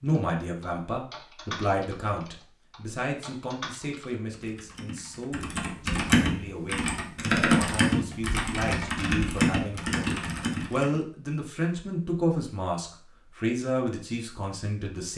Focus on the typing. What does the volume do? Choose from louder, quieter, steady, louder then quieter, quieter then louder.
louder.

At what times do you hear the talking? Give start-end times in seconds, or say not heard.
0.0-15.1.